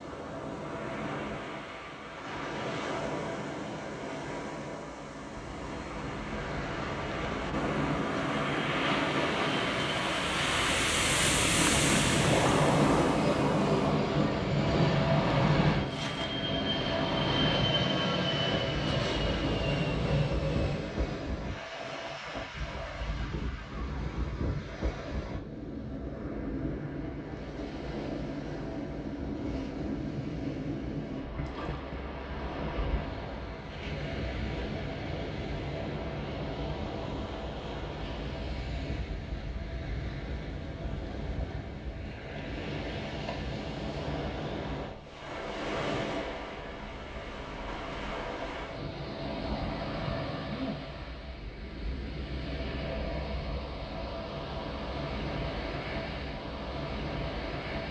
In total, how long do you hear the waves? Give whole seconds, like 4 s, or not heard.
58 s.